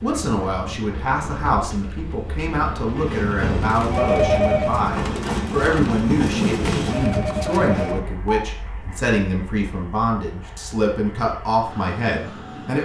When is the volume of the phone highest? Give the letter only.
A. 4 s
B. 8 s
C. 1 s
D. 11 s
A.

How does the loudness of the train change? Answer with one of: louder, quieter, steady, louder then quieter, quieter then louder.
louder then quieter.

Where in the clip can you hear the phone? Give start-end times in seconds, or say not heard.
3.9-4.8, 6.8-8.1.